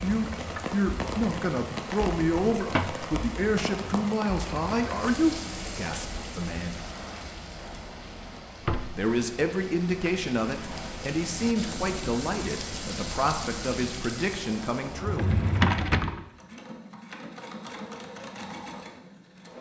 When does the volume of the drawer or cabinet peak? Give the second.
16 s.